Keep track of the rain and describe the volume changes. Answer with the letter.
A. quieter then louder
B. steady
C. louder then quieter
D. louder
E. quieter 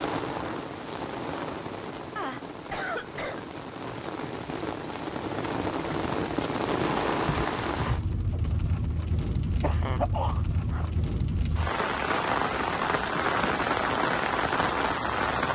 D.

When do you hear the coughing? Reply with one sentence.
The coughing can be heard from 2.1 to 3.4 s and from 9.6 to 10.8 s.